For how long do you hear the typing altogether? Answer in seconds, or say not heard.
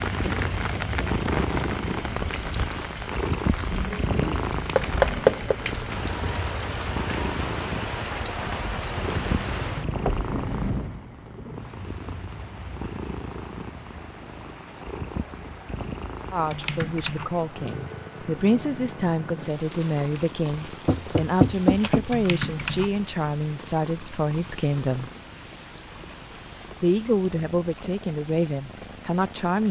2 s.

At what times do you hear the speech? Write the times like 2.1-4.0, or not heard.
16.3-25.1, 26.8-29.6.